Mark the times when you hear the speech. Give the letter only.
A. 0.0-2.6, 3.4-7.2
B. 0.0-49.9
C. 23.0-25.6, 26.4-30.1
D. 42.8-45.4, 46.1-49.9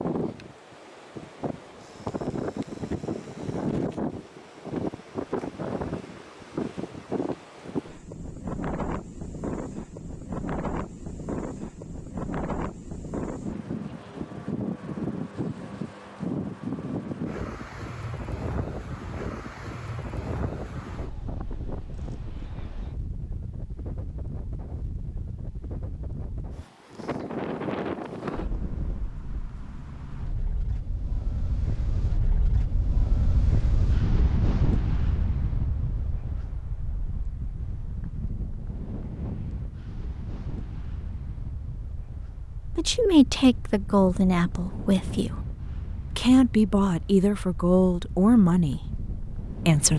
D.